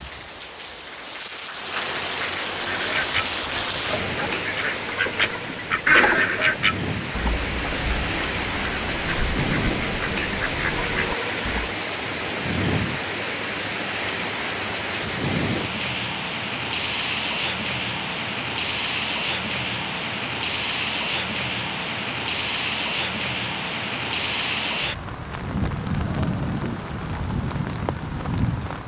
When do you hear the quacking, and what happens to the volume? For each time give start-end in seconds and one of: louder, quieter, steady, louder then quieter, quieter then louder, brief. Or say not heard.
2.5-11.8 louder then quieter.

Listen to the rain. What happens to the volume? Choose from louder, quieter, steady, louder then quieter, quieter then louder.
steady.